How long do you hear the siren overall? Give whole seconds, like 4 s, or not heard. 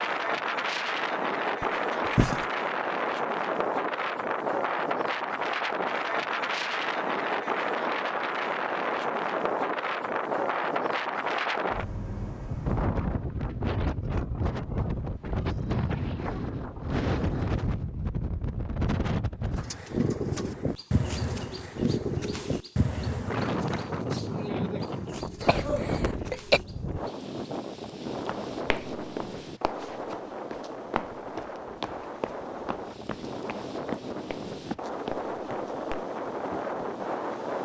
not heard.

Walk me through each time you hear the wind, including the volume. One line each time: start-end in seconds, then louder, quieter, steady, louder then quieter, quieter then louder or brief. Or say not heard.
0.0-37.5 quieter.